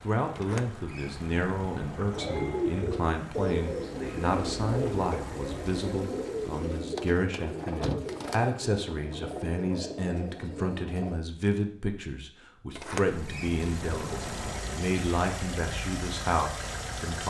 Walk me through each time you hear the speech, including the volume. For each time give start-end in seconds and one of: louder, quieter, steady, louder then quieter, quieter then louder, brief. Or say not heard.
0.0-17.2 steady.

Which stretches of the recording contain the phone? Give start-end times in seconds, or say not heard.
not heard.